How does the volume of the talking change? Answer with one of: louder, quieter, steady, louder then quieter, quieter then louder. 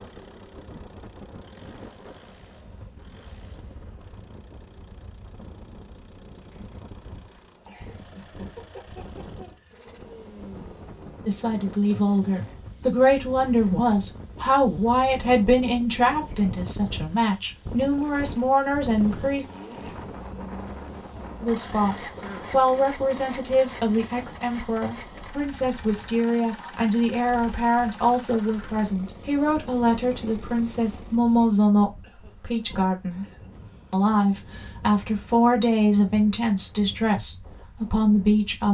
steady.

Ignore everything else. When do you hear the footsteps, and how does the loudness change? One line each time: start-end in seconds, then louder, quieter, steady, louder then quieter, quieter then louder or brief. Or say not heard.
not heard.